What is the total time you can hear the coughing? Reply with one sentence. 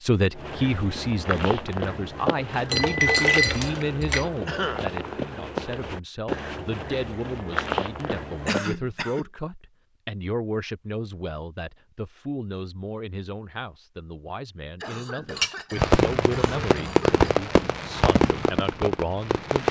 You can hear the coughing for 4 seconds altogether.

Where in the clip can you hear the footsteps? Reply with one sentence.
You can hear the footsteps from 0.3 to 8.6 s.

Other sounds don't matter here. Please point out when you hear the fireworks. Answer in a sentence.
You can hear the fireworks from 15.8 to 19.6 s.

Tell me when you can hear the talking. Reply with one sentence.
The talking can be heard from 0.0 to 19.6 s.